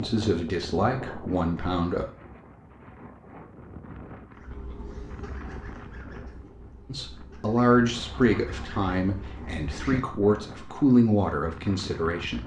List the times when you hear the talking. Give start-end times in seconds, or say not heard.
0.0-2.0, 6.9-12.4.